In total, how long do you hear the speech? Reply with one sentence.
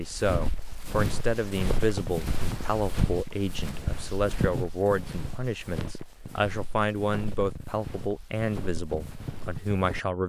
The speech can be heard for 10 seconds in total.